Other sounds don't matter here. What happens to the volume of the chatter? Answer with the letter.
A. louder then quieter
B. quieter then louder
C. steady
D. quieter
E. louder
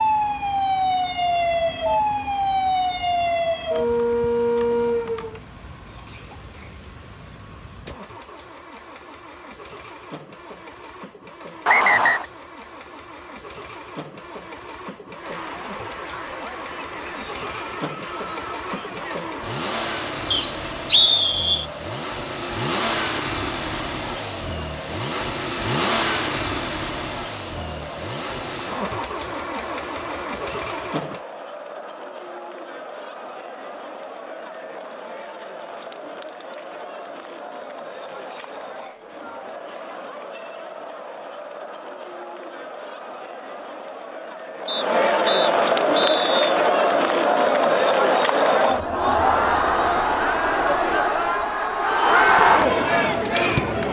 E.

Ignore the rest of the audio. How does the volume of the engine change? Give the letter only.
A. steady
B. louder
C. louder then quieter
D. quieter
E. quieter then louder
B.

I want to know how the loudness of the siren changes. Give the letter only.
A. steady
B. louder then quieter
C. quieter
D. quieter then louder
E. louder
A.